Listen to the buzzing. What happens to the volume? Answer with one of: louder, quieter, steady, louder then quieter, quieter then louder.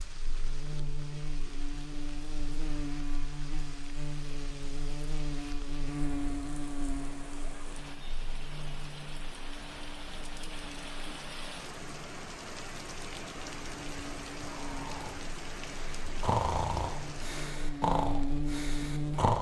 quieter then louder.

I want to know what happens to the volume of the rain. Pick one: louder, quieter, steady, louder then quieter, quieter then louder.
louder.